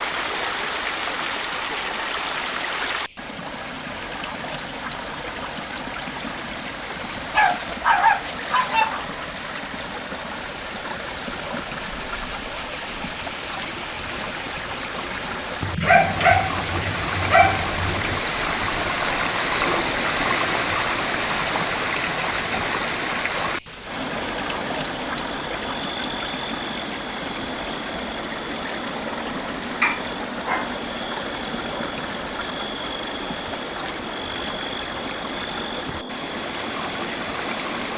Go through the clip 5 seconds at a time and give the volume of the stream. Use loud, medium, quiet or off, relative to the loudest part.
loud, medium, medium, loud, loud, medium, medium, medium.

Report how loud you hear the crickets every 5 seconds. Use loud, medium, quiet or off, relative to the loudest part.
medium, medium, loud, medium, medium, medium, medium, medium.